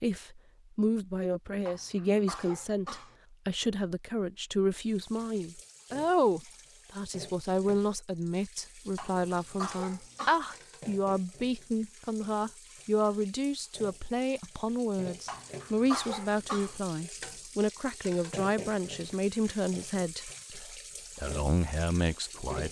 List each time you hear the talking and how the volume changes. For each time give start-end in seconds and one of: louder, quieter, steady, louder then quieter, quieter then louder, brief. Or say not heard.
0.0-22.6 steady.